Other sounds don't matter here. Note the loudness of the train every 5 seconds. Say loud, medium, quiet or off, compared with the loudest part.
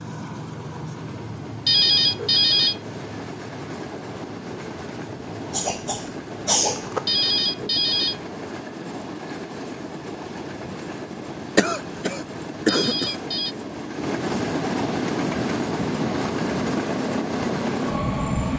medium, medium, medium, loud.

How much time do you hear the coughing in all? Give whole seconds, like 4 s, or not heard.
3 s.